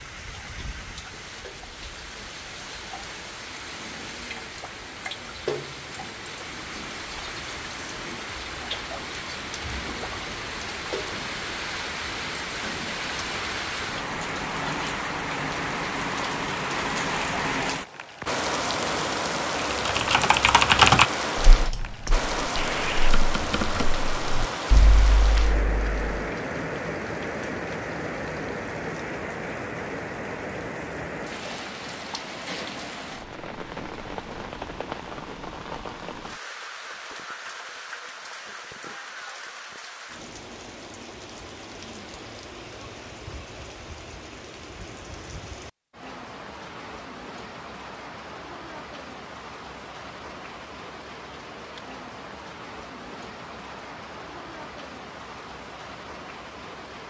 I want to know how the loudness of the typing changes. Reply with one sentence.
The loudness of the typing goes down.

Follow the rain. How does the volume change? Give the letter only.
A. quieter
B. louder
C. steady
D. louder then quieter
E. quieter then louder
D.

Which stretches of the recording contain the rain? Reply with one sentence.
The rain can be heard from 0.0 to 57.0 s.